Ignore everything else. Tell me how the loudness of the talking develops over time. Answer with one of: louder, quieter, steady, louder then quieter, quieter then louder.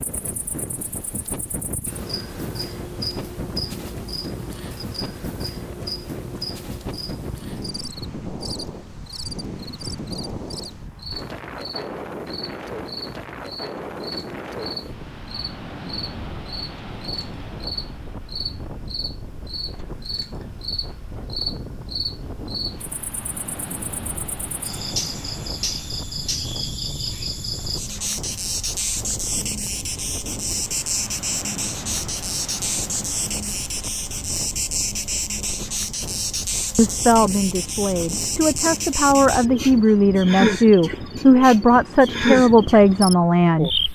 louder.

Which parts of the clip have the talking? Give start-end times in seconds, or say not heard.
36.8-43.8.